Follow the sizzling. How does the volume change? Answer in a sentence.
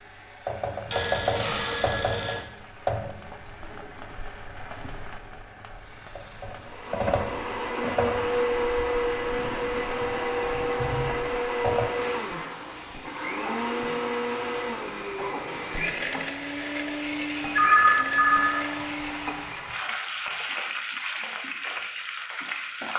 The loudness of the sizzling goes down, then up.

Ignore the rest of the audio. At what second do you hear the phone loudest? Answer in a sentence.
The volume of the phone peaks at 18 seconds.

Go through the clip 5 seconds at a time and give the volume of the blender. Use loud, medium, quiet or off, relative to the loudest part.
off, loud, loud, medium, off.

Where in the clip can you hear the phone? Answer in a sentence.
You can hear the phone from 0.8 to 2.4 s, from 9.3 to 11.2 s and from 17.6 to 18.6 s.